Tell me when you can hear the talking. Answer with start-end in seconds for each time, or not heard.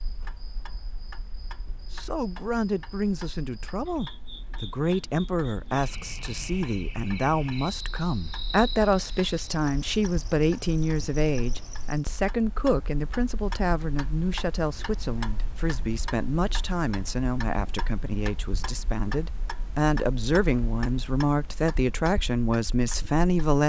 1.9-23.6.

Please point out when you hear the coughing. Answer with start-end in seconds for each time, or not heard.
not heard.